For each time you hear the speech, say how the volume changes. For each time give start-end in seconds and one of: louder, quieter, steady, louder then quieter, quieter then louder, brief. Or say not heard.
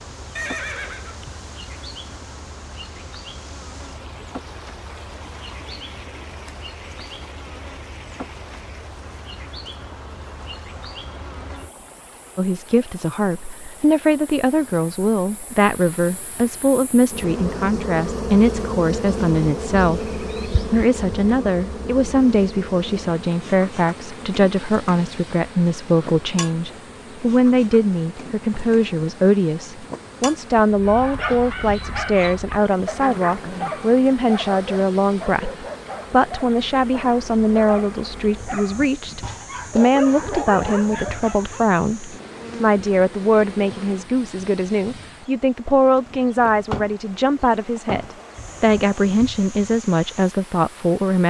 12.3-51.2 steady.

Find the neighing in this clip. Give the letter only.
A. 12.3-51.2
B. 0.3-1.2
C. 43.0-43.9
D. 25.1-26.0
B.